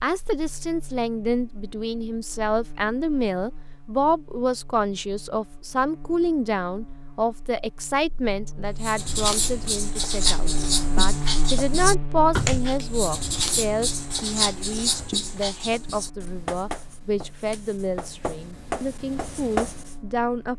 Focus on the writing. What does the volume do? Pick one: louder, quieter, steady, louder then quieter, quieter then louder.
quieter.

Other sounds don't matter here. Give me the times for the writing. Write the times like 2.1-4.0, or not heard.
8.8-19.9.